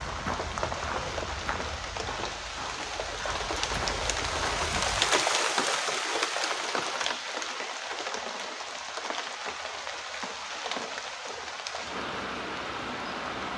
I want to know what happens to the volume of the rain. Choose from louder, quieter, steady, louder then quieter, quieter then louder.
louder then quieter.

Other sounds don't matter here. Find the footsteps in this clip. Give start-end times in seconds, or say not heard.
0.0-5.0.